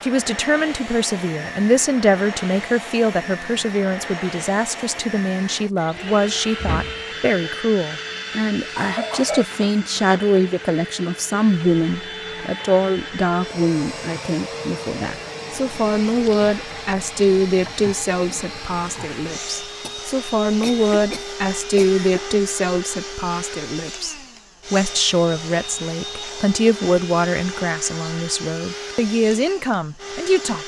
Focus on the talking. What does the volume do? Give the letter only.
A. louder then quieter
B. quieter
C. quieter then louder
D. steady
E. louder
D.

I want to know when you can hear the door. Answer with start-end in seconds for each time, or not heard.
6.5-7.5.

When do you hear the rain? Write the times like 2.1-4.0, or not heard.
not heard.